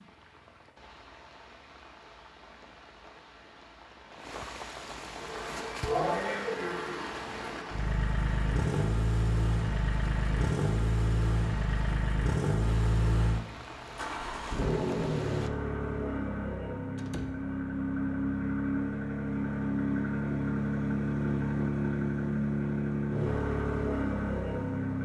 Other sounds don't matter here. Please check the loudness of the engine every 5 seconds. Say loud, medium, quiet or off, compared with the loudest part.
off, loud, loud, loud, loud.